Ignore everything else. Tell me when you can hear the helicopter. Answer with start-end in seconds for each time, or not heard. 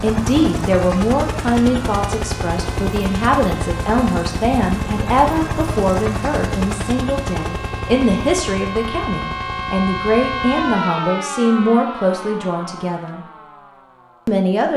0.0-10.8.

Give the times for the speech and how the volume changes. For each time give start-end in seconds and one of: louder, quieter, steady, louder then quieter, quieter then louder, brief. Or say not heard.
0.0-13.2 steady
14.2-14.7 brief.